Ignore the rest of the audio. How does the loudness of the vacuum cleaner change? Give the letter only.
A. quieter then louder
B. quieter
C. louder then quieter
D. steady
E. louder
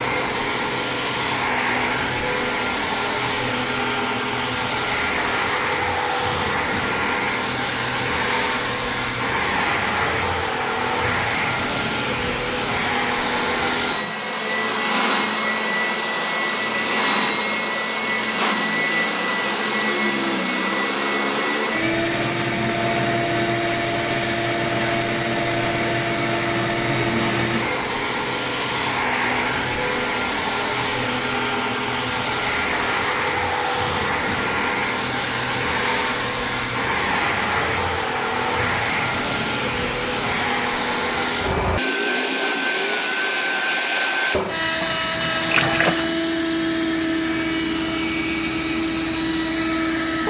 D.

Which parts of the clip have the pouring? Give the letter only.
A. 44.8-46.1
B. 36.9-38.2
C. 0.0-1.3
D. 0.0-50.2
A.